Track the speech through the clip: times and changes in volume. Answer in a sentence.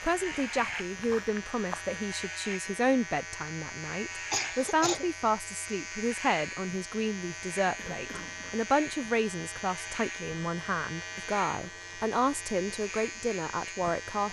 You can hear the speech from 0.0 to 14.2 s, at a steady volume.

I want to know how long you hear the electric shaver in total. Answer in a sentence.
The electric shaver can be heard for 14 seconds in total.